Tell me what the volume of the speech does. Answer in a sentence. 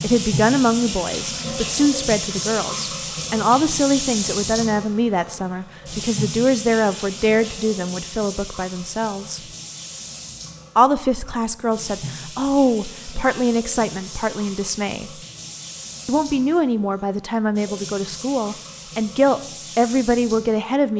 The loudness of the speech stays about the same.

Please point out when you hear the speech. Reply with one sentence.
You can hear the speech from 0.0 to 9.5 s, from 10.8 to 15.2 s and from 16.1 to 20.9 s.